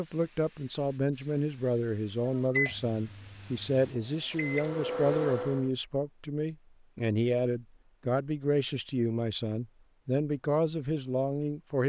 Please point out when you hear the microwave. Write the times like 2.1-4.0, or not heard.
2.2-5.7.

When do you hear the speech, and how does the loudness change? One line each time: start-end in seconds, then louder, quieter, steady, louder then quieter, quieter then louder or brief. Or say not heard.
0.0-11.8 steady.